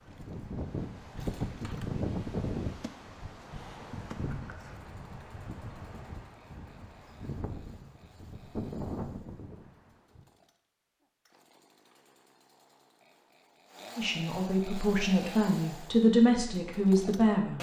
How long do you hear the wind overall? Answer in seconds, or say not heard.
10 s.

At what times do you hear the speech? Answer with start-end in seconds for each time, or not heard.
13.9-17.5.